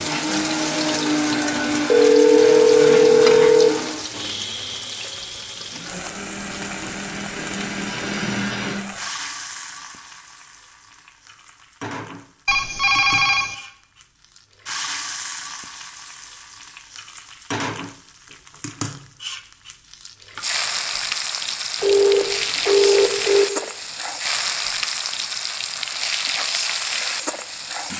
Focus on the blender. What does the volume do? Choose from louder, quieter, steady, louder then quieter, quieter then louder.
quieter then louder.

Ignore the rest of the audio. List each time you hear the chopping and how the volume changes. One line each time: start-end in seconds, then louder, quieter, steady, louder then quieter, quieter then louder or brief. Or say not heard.
not heard.